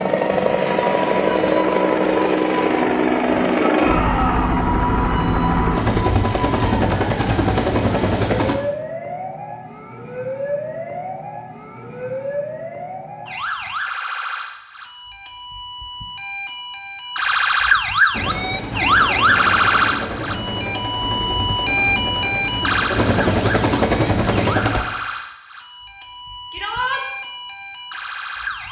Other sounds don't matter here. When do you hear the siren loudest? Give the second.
19 s.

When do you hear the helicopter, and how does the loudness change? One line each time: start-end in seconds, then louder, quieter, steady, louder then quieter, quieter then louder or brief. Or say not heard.
0.0-8.6 steady
18.1-24.8 louder.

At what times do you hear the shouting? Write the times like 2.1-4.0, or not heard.
3.5-4.5, 26.5-27.1.